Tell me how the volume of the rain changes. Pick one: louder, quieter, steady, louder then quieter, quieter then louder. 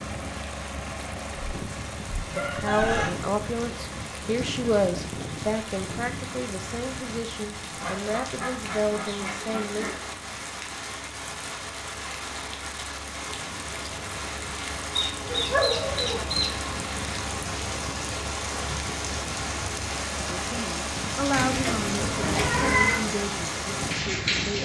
louder.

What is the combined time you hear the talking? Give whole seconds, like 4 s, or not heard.
12 s.